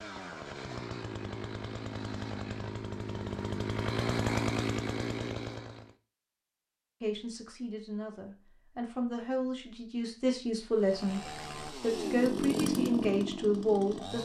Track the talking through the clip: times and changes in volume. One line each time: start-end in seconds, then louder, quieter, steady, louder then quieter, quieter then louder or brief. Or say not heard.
7.0-14.1 louder.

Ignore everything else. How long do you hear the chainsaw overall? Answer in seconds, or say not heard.
9 s.